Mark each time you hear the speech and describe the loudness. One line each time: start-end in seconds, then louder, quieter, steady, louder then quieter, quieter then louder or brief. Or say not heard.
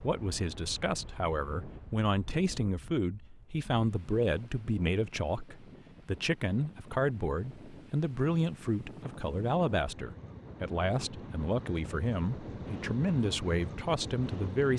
0.0-14.7 steady.